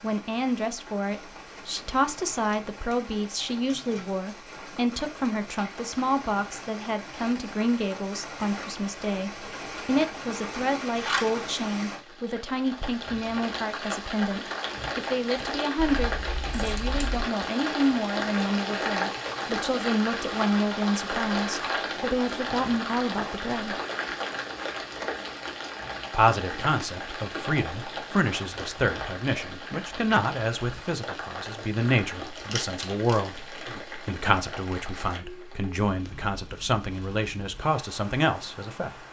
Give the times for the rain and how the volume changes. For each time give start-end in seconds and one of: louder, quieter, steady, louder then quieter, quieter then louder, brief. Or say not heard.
0.0-39.0 louder then quieter.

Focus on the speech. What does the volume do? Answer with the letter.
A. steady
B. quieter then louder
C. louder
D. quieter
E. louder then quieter
A.